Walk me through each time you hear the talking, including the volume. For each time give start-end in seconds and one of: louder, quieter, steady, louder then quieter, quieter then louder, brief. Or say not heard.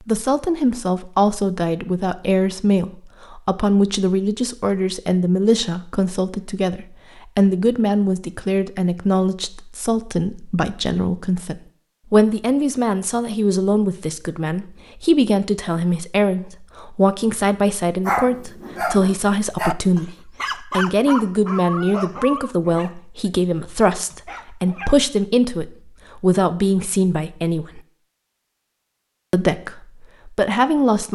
0.1-27.8 steady
29.3-31.0 brief.